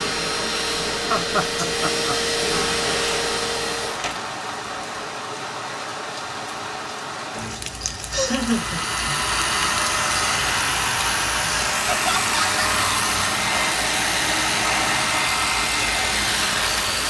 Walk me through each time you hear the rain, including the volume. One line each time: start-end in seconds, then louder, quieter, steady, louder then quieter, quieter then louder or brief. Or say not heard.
2.9-17.0 steady.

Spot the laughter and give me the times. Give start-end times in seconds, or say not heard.
1.1-2.1, 7.5-9.2, 11.8-12.6.